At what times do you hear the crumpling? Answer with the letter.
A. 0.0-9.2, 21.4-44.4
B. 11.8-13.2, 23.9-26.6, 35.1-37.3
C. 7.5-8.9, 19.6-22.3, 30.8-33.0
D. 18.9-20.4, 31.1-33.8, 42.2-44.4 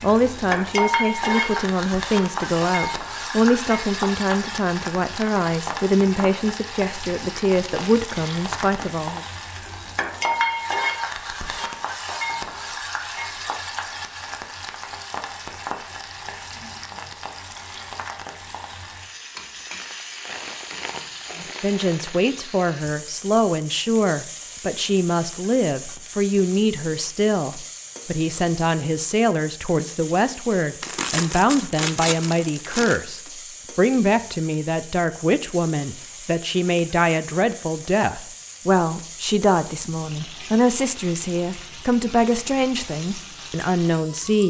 C.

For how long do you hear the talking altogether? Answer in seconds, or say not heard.
32 s.